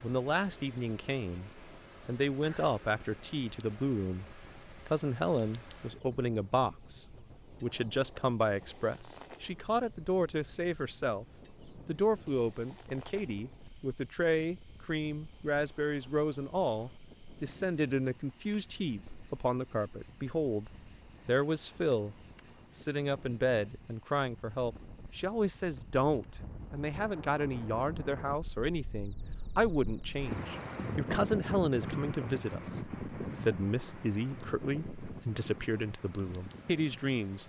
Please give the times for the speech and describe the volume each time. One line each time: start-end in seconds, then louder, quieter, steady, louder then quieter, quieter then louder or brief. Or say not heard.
0.0-37.4 steady.